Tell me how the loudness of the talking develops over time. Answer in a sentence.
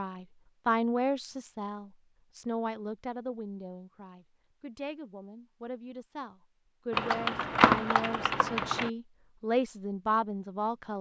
The loudness of the talking goes down, then up.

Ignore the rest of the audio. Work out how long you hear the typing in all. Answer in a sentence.
You can hear the typing for 2 seconds altogether.